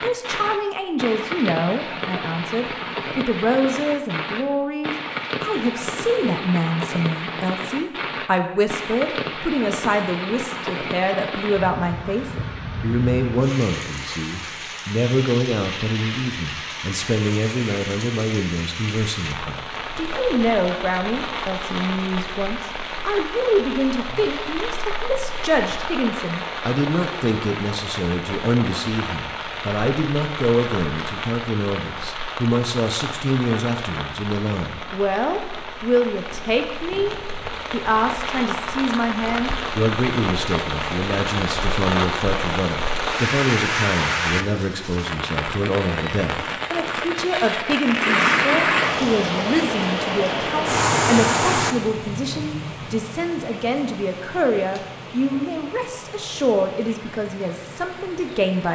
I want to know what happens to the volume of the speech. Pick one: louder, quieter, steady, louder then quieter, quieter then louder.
steady.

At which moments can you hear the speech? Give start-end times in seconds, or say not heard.
0.0-58.7.